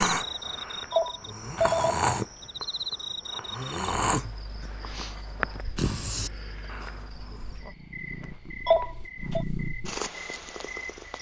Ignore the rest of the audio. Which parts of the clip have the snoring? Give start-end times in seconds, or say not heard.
0.0-7.4.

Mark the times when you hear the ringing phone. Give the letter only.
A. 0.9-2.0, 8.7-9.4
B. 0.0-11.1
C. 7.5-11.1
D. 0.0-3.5
A.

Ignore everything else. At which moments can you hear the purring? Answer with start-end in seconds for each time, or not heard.
7.5-11.1.